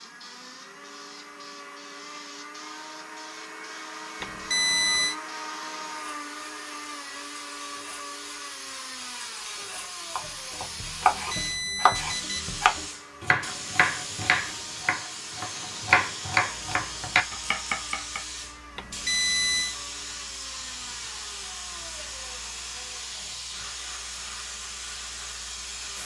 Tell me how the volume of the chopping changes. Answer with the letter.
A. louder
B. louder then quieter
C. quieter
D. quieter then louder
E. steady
E.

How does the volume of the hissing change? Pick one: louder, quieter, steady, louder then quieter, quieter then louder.
louder.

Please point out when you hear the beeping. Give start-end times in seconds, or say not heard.
4.2-5.2, 11.0-12.3, 18.8-19.8.